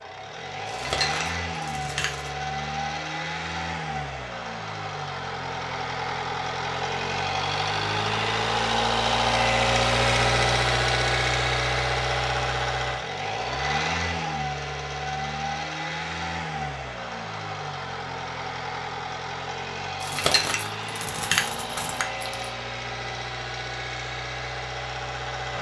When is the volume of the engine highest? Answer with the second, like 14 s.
10 s.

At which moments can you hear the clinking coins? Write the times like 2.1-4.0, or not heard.
0.7-2.4, 20.0-22.5.